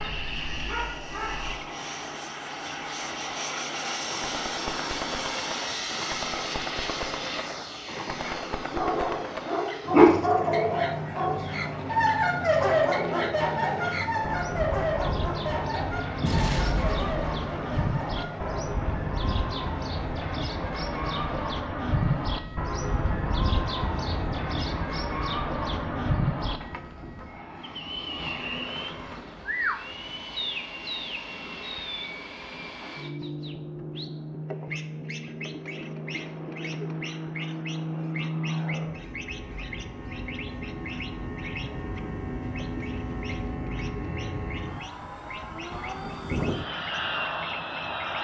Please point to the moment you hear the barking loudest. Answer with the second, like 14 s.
10 s.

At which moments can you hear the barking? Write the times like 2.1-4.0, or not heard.
0.0-1.6, 8.2-18.5.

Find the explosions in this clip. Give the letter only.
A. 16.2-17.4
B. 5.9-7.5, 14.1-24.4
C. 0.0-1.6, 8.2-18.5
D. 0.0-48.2
A.